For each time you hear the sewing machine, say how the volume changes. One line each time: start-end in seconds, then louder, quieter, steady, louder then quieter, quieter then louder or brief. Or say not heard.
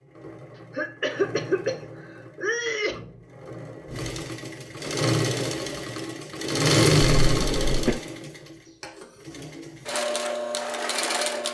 0.0-11.4 louder then quieter.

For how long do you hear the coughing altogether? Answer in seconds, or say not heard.
3 s.